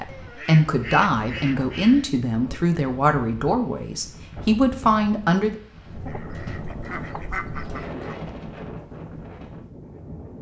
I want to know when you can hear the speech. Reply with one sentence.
You can hear the speech from 0.0 to 5.6 s.